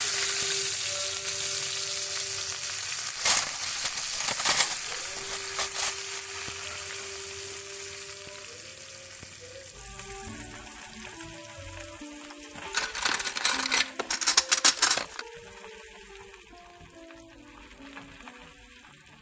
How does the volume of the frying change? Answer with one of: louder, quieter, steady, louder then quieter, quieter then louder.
quieter.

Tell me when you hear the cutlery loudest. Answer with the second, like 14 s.
15 s.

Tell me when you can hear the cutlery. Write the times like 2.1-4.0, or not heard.
3.1-6.0, 12.7-15.2.